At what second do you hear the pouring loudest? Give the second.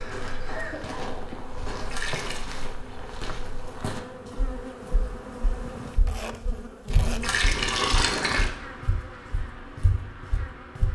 8 s.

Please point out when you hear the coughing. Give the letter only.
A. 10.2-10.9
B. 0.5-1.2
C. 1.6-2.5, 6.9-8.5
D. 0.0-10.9
B.